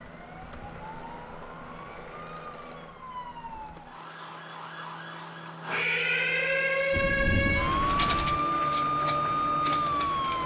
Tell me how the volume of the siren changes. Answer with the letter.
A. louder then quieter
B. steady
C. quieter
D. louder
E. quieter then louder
D.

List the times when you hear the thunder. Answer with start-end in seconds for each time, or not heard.
6.9-8.3.